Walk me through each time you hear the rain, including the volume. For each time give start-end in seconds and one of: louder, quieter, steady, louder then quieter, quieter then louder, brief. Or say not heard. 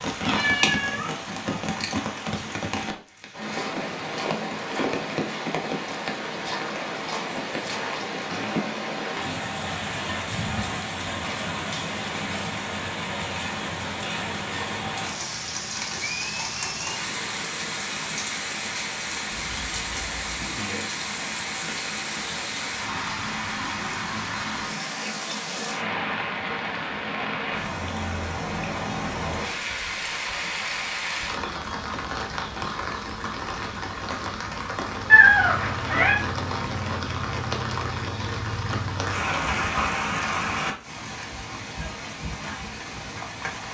0.0-43.6 steady.